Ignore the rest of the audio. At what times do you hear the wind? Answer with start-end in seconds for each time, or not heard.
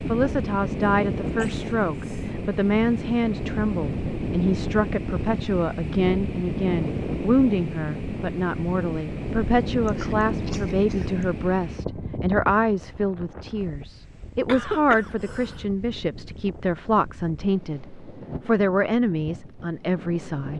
0.0-20.5.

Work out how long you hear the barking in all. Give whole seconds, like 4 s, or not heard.
not heard.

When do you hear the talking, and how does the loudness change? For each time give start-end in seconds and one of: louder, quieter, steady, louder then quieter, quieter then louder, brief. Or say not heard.
0.1-20.5 steady.